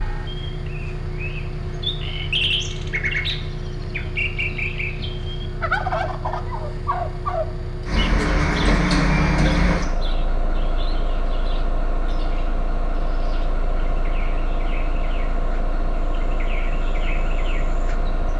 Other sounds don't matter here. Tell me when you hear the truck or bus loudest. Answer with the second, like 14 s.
9 s.